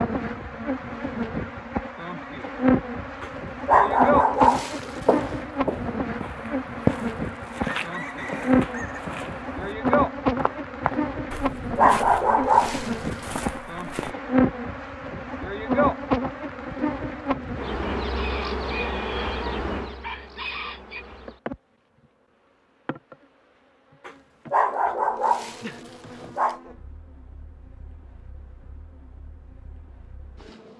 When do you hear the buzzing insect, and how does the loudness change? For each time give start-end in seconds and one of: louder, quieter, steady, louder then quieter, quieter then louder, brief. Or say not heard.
0.0-30.7 quieter.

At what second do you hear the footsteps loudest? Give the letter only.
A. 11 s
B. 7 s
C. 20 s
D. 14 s
B.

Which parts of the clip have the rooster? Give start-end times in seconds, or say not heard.
7.6-9.0, 18.0-21.1.